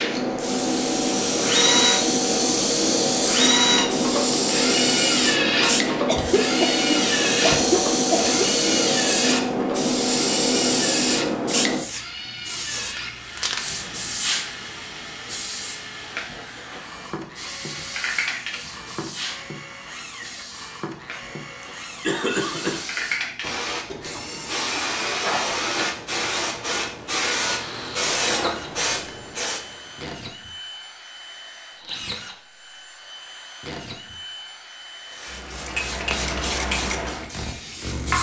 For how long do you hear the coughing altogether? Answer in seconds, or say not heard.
4 s.